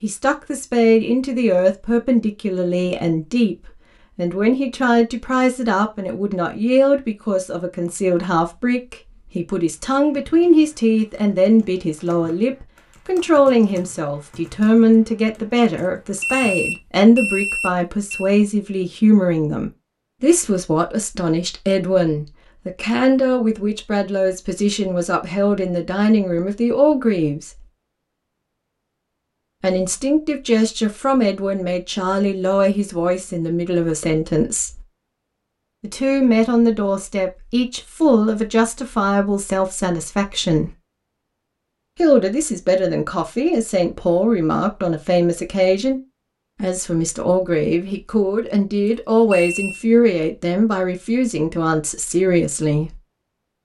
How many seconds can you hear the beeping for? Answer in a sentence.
You can hear the beeping for 3 seconds altogether.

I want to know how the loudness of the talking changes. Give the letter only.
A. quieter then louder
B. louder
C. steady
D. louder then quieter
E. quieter
C.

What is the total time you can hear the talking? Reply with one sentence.
You can hear the talking for 48 seconds altogether.